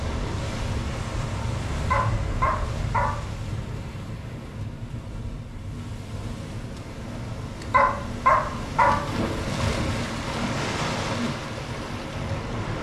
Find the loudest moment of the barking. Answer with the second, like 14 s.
8 s.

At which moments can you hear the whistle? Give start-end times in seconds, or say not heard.
not heard.